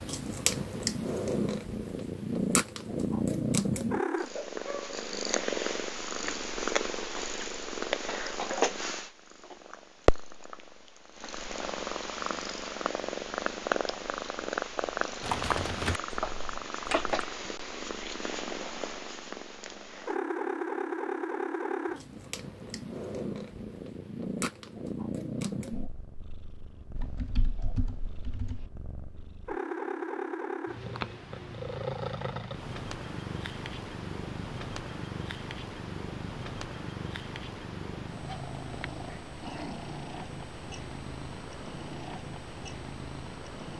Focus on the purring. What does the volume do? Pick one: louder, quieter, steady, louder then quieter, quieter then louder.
quieter.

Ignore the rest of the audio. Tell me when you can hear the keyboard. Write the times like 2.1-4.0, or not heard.
15.2-17.2, 26.9-28.6.